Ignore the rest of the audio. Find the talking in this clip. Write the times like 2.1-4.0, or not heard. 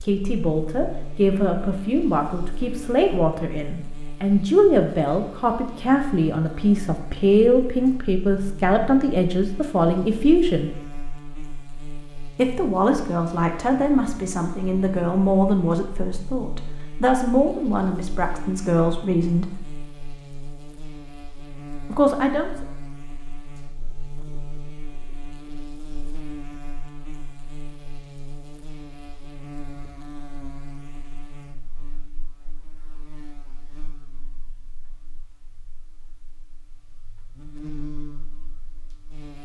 0.0-10.7, 12.3-19.6, 21.9-22.5.